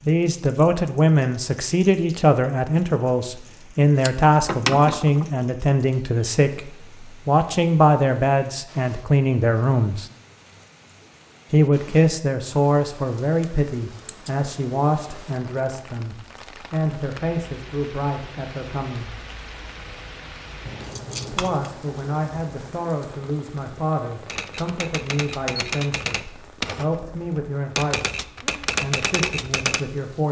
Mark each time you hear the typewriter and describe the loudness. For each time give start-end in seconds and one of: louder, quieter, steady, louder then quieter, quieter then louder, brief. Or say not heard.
24.2-29.9 louder.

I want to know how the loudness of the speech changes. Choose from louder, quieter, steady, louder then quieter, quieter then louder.
quieter.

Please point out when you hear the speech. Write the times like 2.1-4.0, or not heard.
0.1-10.1, 11.5-19.1, 21.3-30.2.